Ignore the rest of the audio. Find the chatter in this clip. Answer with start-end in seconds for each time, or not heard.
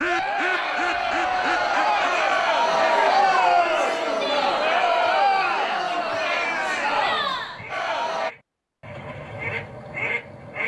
0.0-8.3.